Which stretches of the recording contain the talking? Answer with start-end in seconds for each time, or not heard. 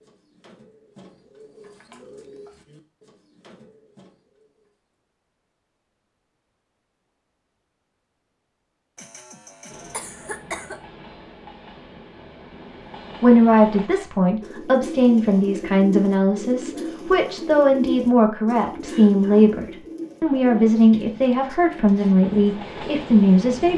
13.2-23.7.